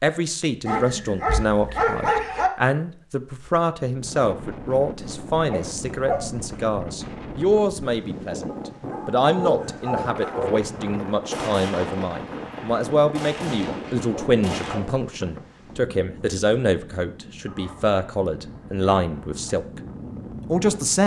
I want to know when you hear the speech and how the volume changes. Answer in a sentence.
The speech can be heard from 0.0 to 19.8 s, at a steady volume; and briefly from 20.5 to 21.0 s.